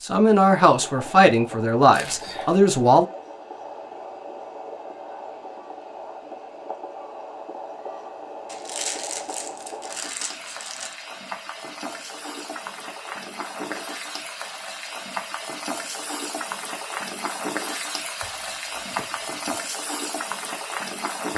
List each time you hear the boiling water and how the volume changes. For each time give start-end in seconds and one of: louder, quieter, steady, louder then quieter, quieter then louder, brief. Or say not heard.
0.0-21.3 louder.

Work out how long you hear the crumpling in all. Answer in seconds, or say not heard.
4 s.